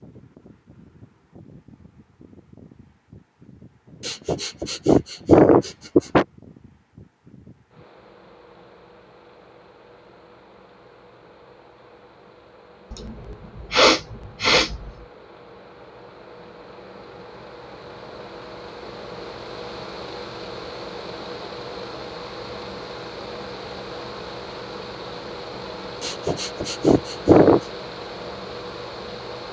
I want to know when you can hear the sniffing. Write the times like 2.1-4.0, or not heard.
4.0-6.2, 12.9-14.9, 26.0-27.6.